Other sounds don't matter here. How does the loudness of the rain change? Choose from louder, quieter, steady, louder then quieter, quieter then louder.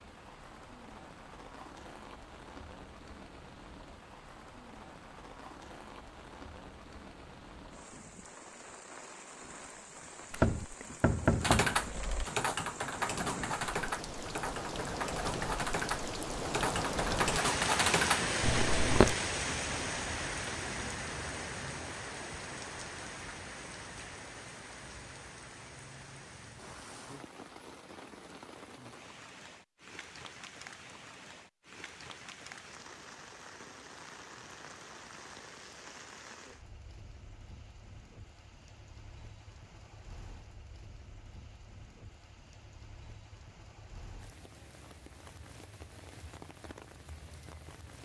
louder then quieter.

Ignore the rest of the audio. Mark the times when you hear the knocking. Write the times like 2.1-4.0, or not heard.
10.3-12.2.